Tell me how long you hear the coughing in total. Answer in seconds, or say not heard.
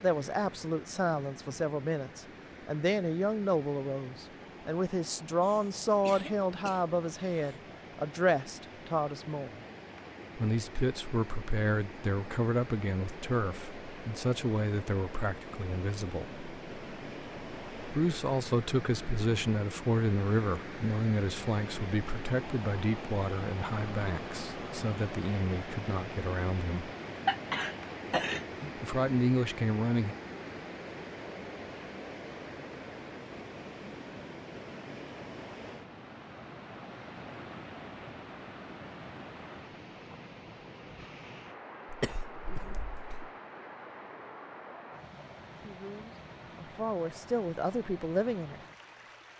5 s.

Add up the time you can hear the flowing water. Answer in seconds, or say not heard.
49 s.